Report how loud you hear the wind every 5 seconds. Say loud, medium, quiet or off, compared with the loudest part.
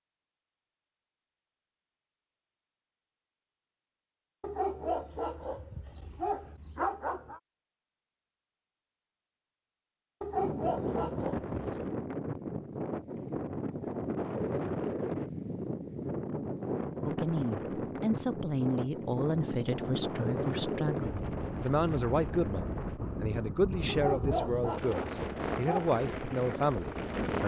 off, off, loud, loud, loud, loud.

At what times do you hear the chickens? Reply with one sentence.
The chickens can't be heard in this clip.